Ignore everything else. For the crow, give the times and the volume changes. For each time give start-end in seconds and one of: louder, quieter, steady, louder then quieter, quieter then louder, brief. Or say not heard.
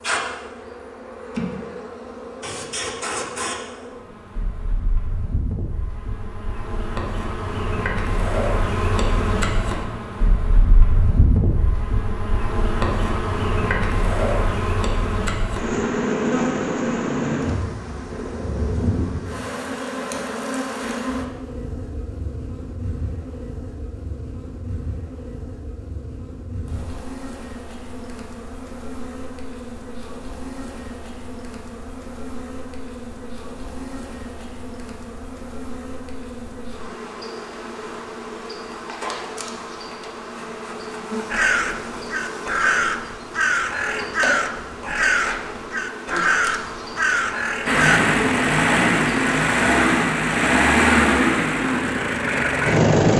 41.3-48.0 steady.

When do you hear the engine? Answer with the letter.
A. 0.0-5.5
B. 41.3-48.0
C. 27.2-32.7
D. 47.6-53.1
D.